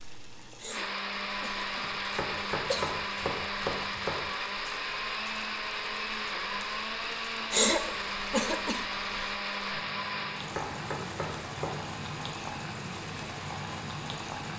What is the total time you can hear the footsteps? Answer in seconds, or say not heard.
not heard.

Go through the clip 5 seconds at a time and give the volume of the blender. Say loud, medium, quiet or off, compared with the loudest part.
loud, loud, medium.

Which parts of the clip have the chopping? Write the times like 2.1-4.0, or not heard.
1.8-4.2, 10.2-11.8.